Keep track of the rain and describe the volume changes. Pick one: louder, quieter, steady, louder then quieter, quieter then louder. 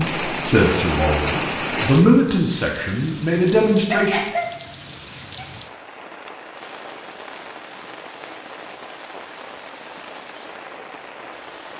quieter.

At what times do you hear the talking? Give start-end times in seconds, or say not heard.
0.0-4.2.